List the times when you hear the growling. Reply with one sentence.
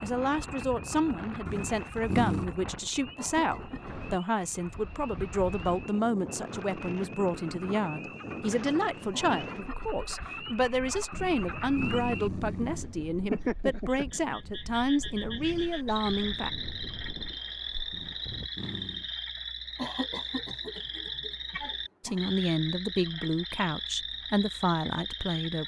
The growling can be heard from 1.4 to 2.5 s, from 11.1 to 12.8 s and from 17.9 to 19.1 s.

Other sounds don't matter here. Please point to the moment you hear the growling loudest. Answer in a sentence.
The volume of the growling peaks at 2 seconds.